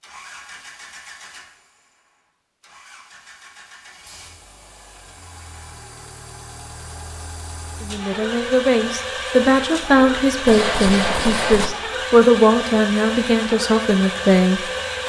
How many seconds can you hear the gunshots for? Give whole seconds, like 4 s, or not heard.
2 s.